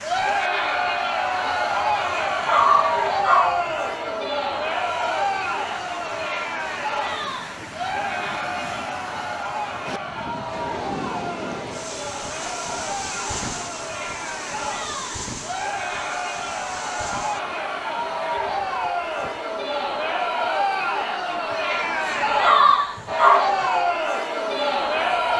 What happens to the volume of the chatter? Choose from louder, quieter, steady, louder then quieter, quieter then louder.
quieter then louder.